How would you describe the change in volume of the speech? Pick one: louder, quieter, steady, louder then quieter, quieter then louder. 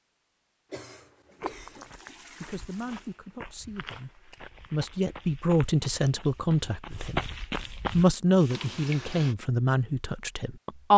louder.